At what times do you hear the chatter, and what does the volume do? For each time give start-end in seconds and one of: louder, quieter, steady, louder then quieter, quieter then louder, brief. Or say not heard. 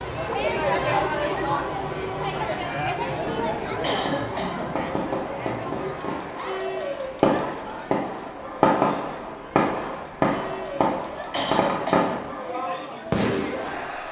0.0-14.0 quieter.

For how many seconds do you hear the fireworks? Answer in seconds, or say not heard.
10 s.